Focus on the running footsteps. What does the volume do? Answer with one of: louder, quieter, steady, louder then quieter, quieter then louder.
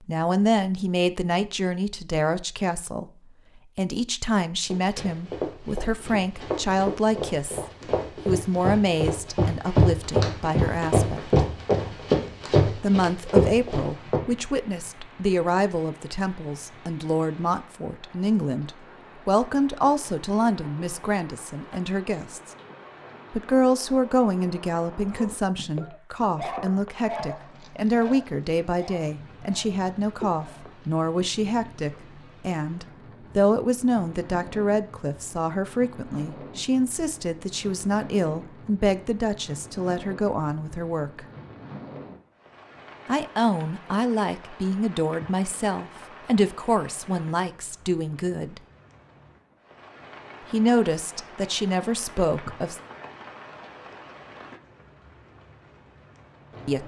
louder.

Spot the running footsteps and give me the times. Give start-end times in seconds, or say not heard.
4.7-14.2.